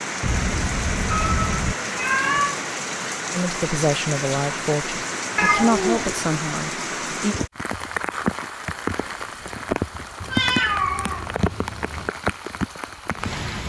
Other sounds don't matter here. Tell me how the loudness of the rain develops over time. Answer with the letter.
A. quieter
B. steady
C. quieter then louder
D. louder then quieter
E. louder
B.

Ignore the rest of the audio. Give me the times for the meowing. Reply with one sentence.
You can hear the meowing from 0.2 to 2.6 s, from 5.3 to 6.2 s and from 10.2 to 12.1 s.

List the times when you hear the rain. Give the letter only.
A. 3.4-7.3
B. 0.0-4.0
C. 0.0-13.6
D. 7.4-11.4
C.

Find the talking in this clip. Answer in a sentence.
You can hear the talking from 3.4 to 7.3 s.